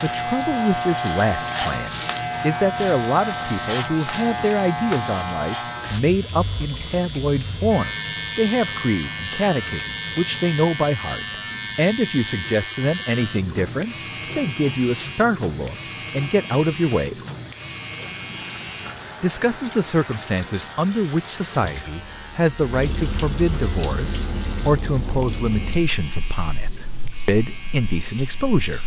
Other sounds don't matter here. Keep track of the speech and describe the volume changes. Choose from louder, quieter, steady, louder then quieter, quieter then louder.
steady.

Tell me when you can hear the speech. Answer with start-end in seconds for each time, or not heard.
0.0-17.1, 19.2-28.8.